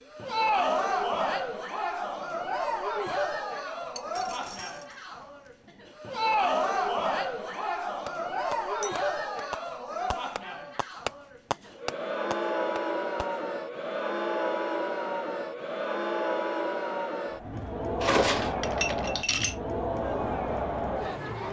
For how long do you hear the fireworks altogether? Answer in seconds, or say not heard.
6 s.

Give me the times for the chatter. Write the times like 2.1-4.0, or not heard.
0.0-21.4.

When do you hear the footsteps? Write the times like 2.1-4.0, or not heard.
not heard.